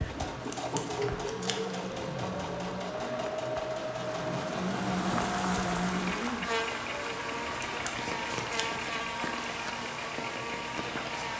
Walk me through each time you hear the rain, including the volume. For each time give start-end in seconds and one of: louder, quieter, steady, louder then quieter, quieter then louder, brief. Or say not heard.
0.0-11.3 louder then quieter.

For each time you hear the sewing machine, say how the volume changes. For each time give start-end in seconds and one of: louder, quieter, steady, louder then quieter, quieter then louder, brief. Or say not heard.
0.0-11.2 quieter.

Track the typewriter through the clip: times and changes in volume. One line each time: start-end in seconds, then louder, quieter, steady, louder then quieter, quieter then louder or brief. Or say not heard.
not heard.